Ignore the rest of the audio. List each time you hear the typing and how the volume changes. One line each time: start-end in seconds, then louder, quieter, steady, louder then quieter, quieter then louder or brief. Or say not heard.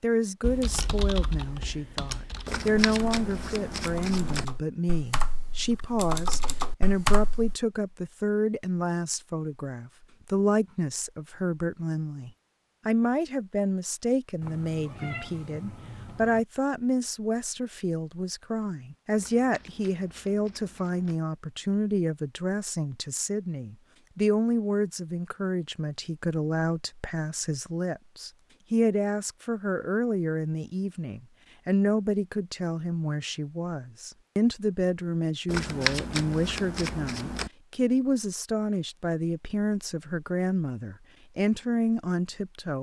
0.4-7.5 quieter then louder.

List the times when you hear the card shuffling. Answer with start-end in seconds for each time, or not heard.
2.5-4.5, 19.1-21.2, 35.5-37.5.